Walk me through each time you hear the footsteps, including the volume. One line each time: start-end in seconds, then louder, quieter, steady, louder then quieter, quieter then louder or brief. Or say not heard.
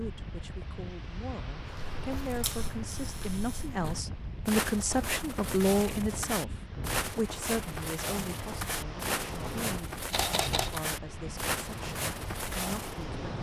1.6-13.1 louder.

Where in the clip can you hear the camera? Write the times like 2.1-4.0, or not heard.
2.4-3.6, 10.1-10.8.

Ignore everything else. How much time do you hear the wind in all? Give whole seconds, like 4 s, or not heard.
13 s.